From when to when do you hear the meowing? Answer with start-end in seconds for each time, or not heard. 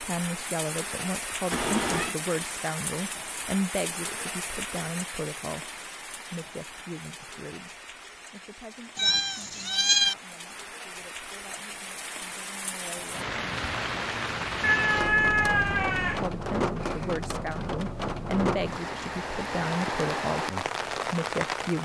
1.5-2.1, 8.9-10.2, 14.6-16.2.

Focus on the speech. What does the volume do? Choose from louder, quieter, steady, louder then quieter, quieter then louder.
quieter then louder.